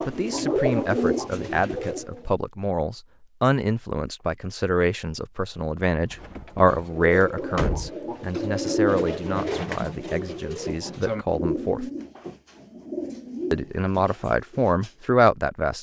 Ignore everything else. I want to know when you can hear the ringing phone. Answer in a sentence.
You can't hear the ringing phone here.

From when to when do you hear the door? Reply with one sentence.
You can hear the door from 6.0 to 7.9 s.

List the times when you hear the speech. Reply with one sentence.
The speech can be heard from 0.1 to 11.8 s and from 13.5 to 15.7 s.